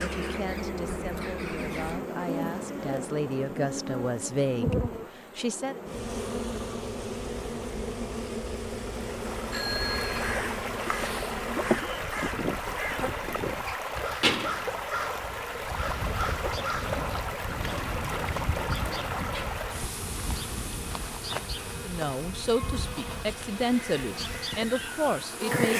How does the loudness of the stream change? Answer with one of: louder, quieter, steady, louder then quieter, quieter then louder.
quieter.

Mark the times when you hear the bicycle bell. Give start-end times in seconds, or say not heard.
9.5-10.3.